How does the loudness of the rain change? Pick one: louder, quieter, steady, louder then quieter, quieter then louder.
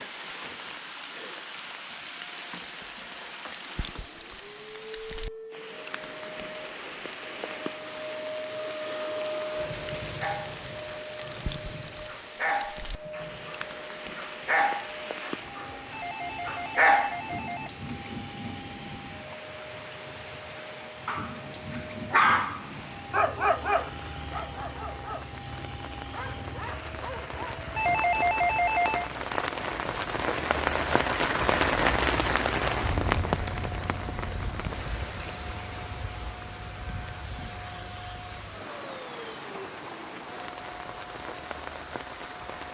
louder then quieter.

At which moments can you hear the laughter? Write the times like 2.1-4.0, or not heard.
not heard.